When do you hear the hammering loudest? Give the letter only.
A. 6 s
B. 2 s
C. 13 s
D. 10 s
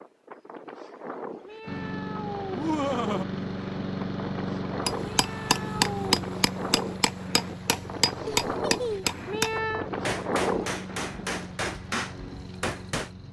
A.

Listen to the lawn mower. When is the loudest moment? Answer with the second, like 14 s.
4 s.